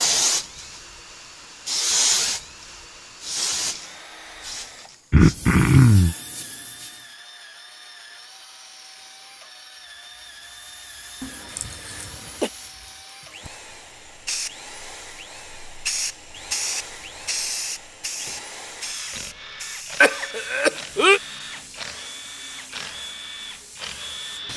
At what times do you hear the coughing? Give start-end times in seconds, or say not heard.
5.1-6.2, 11.2-12.5, 20.0-21.2.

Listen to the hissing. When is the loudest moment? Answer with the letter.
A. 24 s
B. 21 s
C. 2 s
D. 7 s
C.